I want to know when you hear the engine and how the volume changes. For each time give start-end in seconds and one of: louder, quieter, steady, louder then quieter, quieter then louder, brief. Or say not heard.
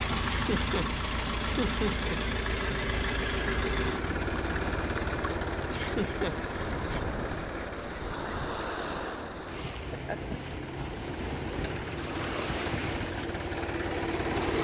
0.0-14.5 quieter then louder.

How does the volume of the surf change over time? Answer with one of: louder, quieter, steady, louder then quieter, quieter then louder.
steady.